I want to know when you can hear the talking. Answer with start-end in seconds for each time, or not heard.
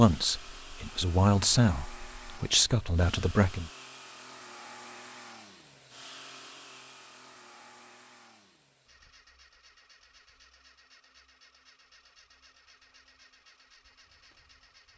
0.0-3.7.